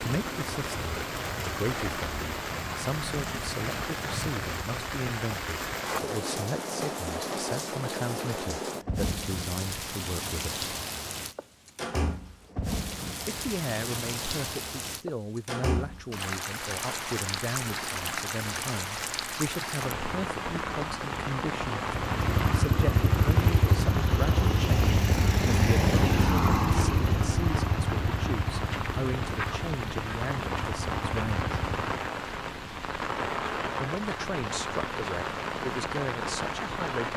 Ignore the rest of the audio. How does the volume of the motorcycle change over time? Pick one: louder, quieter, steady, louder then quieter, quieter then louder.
quieter.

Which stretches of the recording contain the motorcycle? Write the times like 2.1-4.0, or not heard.
21.9-32.0.